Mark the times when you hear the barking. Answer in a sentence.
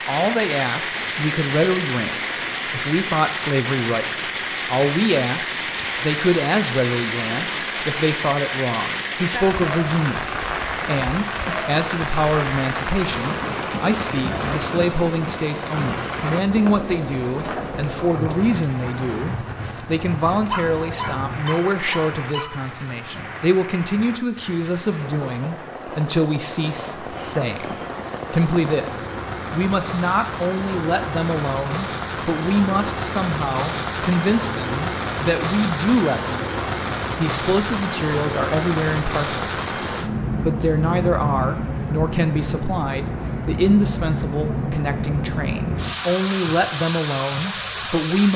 The barking can be heard from 20.5 to 22.5 s.